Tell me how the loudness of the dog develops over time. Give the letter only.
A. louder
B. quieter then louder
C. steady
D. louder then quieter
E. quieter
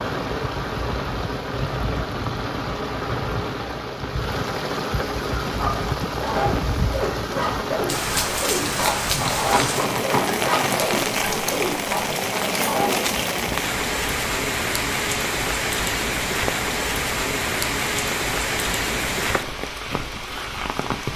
C.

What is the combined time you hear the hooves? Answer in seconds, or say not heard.
2 s.